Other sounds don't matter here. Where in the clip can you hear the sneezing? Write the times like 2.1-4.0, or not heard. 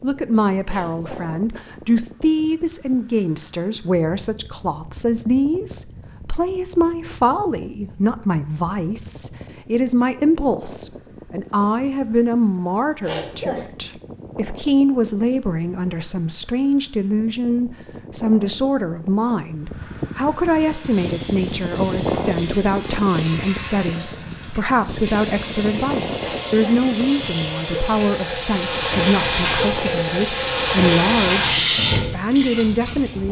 0.7-1.3, 13.0-13.7, 26.2-26.9.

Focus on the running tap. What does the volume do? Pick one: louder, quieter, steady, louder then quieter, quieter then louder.
louder.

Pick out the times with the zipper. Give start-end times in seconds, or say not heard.
not heard.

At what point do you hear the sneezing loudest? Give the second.
13 s.